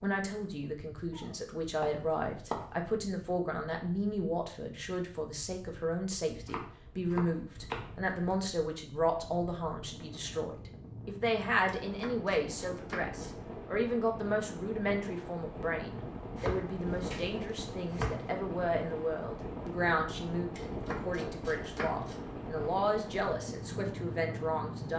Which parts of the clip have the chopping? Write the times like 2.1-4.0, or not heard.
1.1-2.7, 6.3-8.3, 11.7-13.3, 16.4-18.3, 20.6-22.2.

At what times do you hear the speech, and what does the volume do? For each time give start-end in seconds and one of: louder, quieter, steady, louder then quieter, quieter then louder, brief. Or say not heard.
0.0-24.9 steady.